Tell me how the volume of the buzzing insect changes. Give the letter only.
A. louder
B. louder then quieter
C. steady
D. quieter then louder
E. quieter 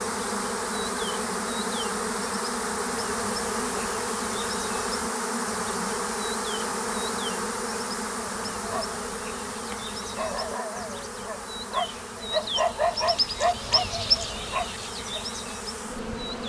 E.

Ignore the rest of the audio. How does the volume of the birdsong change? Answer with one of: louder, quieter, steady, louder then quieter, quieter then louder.
louder.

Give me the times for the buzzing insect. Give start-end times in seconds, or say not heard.
0.0-16.4.